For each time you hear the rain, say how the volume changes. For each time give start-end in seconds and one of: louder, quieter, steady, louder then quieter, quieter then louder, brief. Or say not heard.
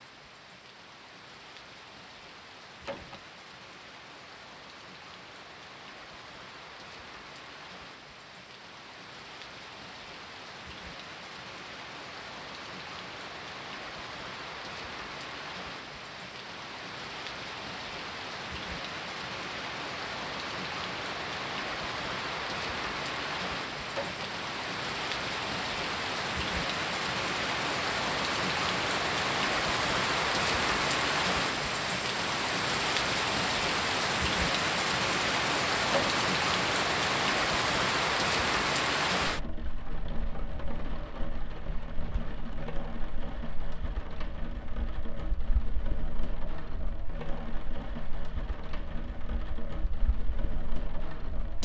0.0-51.6 louder then quieter.